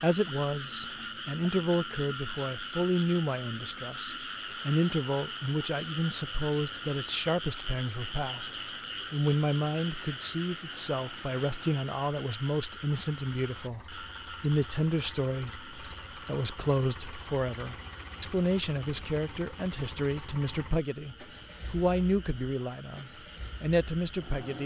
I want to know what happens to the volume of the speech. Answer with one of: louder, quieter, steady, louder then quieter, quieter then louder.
steady.